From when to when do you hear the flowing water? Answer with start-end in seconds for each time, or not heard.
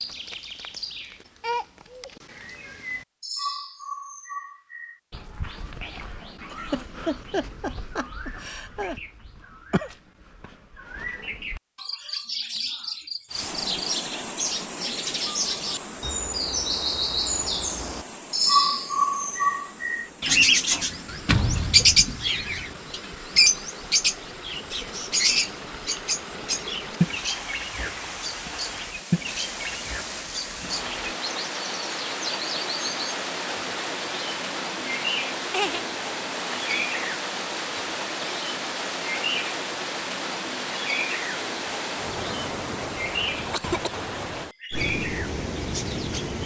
13.2-46.4.